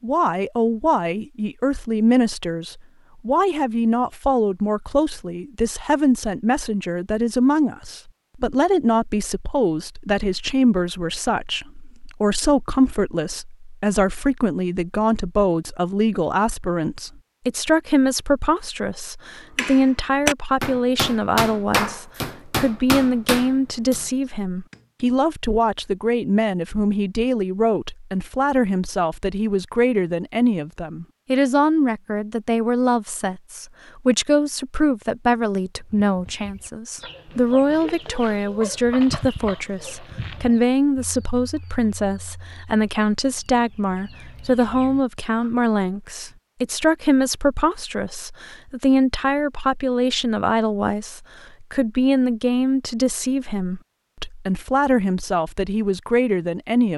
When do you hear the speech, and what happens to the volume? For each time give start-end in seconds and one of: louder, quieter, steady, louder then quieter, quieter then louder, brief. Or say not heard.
0.0-56.9 steady.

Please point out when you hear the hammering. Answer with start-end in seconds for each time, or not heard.
19.6-25.1.